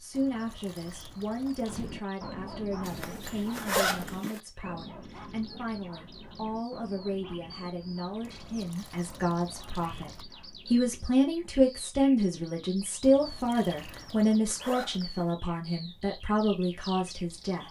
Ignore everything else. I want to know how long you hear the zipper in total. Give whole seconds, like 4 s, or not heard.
3 s.